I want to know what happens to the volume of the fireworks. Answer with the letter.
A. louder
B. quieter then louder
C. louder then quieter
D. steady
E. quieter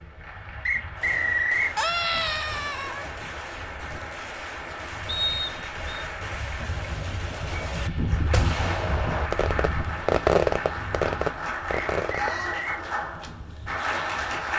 A.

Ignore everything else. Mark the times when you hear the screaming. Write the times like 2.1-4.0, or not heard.
1.8-3.1, 12.1-12.7.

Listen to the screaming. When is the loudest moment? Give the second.
2 s.